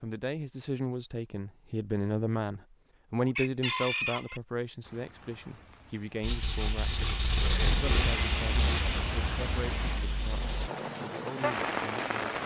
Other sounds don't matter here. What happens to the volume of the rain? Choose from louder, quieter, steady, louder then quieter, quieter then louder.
louder.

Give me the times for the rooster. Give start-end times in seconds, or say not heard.
3.1-4.4.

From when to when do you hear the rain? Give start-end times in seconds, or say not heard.
4.8-12.4.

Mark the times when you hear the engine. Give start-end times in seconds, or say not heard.
6.2-10.7.